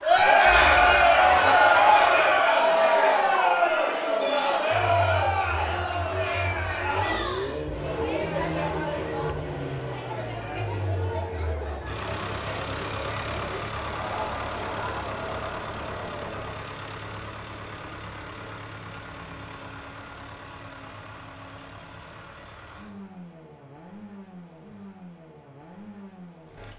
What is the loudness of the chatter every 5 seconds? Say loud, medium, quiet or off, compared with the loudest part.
loud, medium, quiet, quiet, off, off.